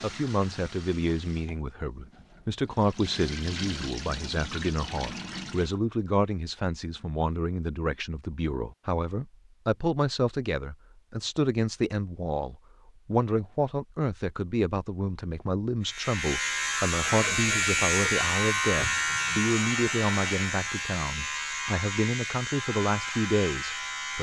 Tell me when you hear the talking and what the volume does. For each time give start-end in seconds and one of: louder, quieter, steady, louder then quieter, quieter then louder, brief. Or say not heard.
0.0-24.1 steady.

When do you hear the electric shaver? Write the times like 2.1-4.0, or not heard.
15.8-24.1.